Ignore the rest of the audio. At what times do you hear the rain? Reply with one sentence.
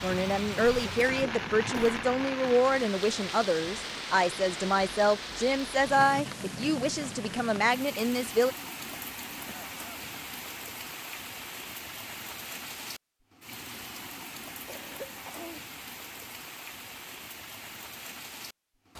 You can hear the rain from 0.0 to 18.9 s.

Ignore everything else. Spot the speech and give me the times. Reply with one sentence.
The speech can be heard from 0.0 to 8.6 s.